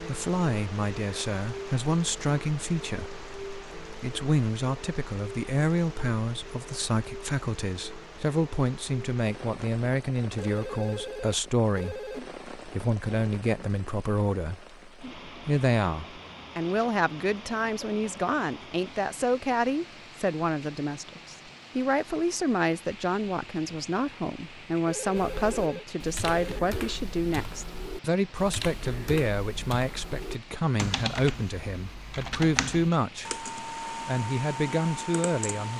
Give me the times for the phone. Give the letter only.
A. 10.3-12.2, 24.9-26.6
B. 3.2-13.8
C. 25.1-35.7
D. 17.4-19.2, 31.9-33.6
A.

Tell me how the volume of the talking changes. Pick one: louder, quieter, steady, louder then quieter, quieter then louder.
steady.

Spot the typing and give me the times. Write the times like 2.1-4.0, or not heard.
25.1-35.7.